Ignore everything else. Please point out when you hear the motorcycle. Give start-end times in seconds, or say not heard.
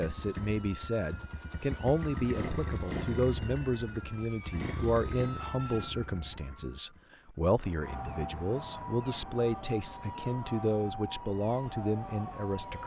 0.0-7.0.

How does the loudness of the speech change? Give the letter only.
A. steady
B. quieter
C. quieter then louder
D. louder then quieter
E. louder
A.